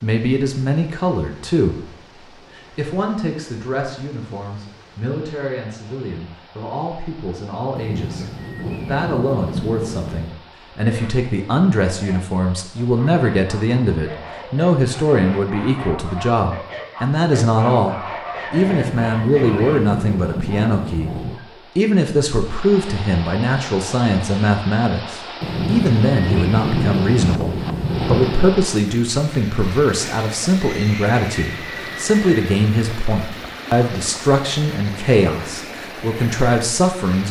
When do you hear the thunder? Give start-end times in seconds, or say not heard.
7.8-10.3, 18.6-21.4, 25.4-28.6.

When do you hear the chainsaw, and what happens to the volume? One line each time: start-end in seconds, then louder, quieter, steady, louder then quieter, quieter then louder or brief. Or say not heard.
not heard.